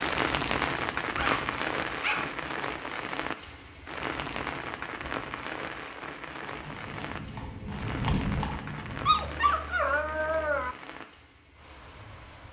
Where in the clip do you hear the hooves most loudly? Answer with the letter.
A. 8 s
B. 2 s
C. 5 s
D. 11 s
A.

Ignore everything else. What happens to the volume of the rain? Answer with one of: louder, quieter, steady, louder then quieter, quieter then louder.
quieter.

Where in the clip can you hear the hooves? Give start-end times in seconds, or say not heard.
6.4-9.3.